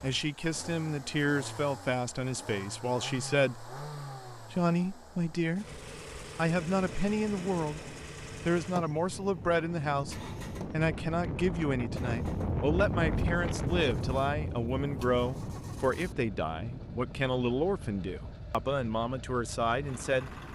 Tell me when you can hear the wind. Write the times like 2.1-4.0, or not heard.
6.5-20.5.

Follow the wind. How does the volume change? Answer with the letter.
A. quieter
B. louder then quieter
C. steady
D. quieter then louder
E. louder
B.